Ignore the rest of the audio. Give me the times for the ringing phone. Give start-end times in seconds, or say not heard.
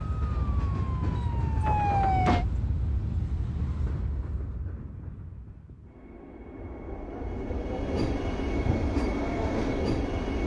not heard.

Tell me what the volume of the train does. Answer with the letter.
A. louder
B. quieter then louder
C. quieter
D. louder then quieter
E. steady
B.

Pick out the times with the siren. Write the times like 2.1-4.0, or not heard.
0.0-2.5.